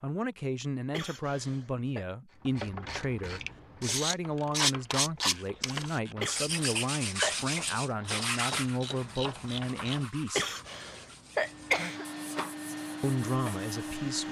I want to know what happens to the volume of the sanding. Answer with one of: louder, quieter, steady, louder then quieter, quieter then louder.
quieter.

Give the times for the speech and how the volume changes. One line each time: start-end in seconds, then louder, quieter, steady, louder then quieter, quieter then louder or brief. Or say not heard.
0.0-10.6 steady
13.0-14.2 brief.